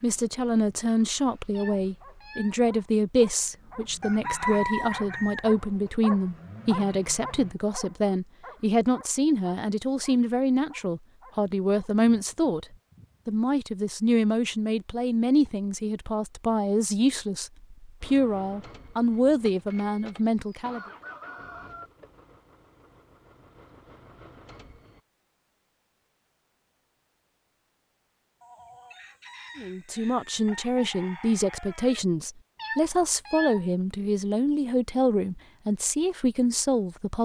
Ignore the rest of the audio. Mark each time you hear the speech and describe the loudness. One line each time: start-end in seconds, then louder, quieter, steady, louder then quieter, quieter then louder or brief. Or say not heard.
0.0-20.8 steady
29.6-37.2 steady.